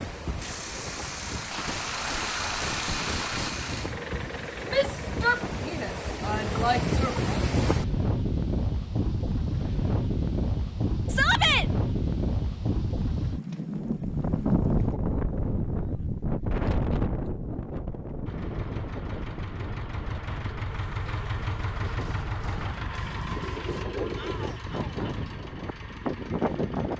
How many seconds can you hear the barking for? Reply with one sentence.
You can't hear the barking here.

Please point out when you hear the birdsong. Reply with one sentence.
The birdsong can't be heard in this clip.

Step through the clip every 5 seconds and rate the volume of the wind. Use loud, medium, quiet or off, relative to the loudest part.
medium, loud, loud, loud, medium, loud.